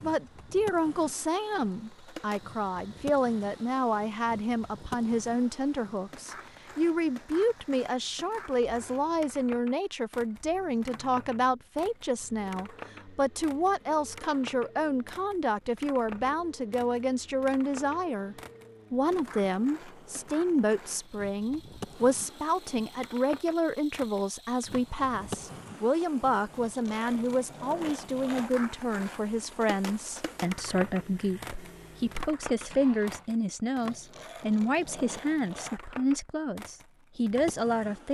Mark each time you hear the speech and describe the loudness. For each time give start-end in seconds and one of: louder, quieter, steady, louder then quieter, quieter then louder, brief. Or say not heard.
0.0-38.0 steady.